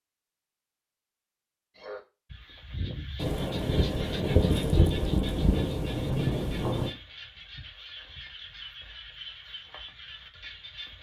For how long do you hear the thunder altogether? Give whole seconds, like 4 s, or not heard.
4 s.